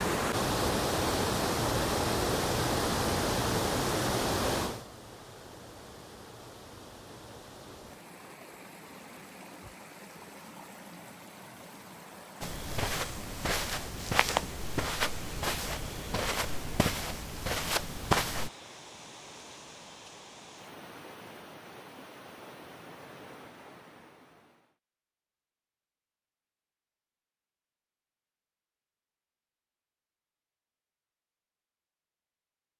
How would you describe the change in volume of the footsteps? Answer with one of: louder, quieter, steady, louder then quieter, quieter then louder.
steady.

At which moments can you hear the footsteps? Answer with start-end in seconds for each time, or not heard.
12.4-18.5.